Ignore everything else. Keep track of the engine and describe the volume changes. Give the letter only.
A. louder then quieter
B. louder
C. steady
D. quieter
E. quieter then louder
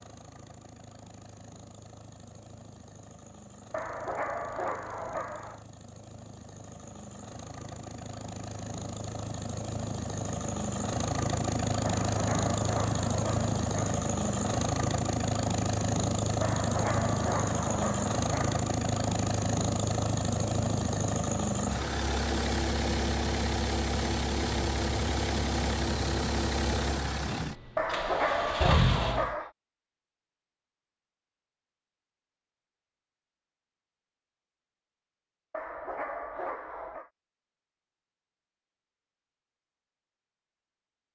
B.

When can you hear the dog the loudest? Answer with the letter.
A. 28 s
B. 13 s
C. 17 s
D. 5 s
A.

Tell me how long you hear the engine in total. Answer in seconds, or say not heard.
29 s.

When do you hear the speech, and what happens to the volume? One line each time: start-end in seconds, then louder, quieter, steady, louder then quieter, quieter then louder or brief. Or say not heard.
not heard.